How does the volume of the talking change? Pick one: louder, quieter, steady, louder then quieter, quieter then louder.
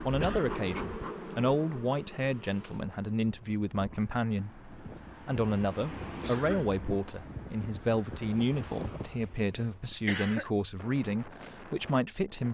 steady.